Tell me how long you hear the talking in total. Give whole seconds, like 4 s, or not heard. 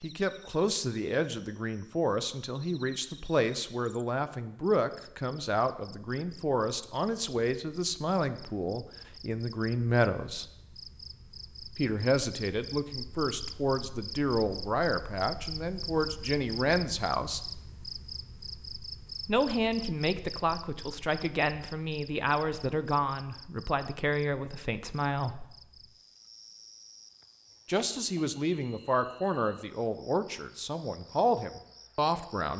27 s.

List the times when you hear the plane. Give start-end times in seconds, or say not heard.
not heard.